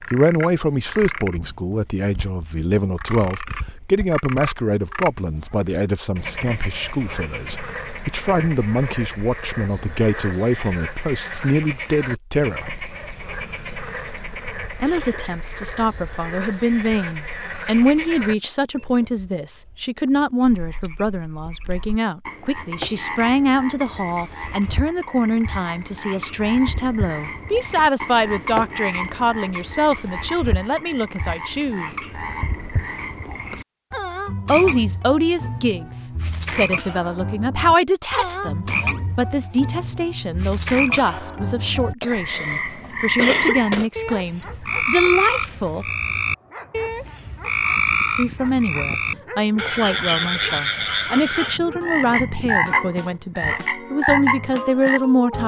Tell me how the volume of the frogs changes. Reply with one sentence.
The loudness of the frogs goes up.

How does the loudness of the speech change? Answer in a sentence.
The loudness of the speech stays about the same.